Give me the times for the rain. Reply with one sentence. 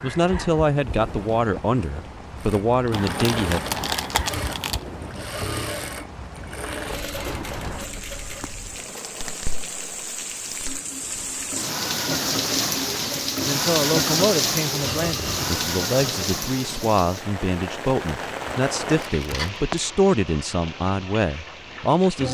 The rain can be heard from 0.0 to 22.2 s.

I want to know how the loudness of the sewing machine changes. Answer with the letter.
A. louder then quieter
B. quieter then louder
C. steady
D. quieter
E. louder
B.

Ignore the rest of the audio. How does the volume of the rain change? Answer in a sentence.
The loudness of the rain goes up, then down.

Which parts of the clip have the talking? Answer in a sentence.
You can hear the talking from 0.0 to 3.6 s and from 13.4 to 22.2 s.